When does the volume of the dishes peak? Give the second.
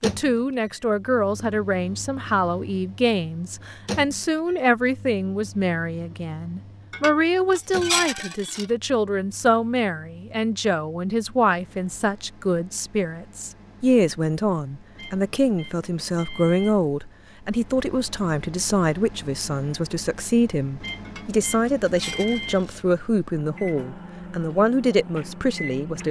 8 s.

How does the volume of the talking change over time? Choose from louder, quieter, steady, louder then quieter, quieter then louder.
steady.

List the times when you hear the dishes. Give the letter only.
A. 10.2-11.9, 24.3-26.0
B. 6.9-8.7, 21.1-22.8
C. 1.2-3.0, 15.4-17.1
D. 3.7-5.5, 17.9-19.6
B.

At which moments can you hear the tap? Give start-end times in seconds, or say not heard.
not heard.